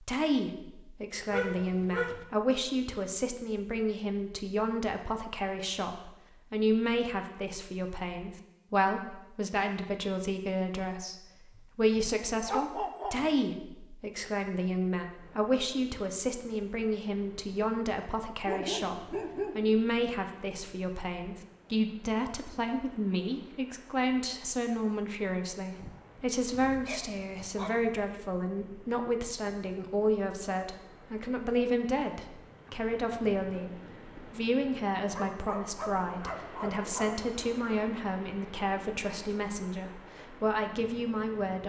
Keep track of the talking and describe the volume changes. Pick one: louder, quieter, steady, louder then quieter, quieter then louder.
steady.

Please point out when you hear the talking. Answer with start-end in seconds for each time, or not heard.
0.0-41.6.